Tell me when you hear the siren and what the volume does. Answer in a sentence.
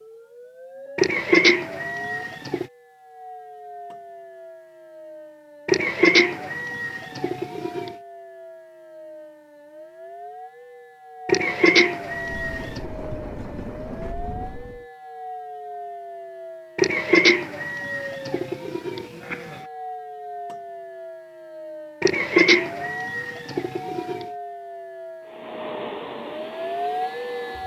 You can hear the siren from 0.0 to 27.6 s, getting louder.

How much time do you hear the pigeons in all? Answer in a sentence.
You can hear the pigeons for 11 seconds altogether.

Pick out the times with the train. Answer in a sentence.
The train can be heard from 12.1 to 14.8 s and from 25.2 to 27.6 s.